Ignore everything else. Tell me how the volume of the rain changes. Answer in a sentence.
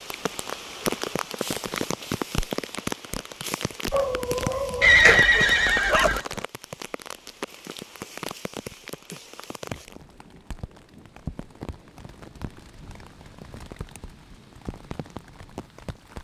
The volume of the rain goes down.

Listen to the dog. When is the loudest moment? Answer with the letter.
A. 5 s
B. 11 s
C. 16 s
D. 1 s
A.